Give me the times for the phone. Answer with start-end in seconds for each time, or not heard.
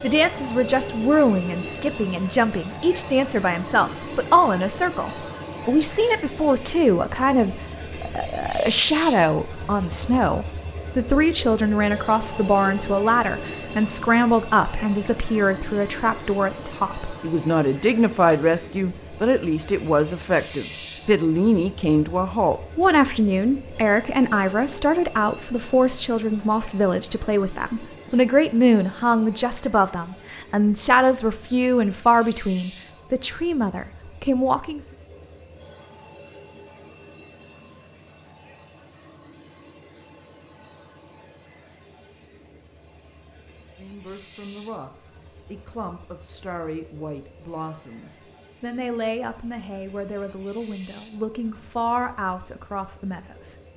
not heard.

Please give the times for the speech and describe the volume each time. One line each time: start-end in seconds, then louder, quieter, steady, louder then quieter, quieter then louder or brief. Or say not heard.
0.0-34.8 steady
43.8-53.5 louder.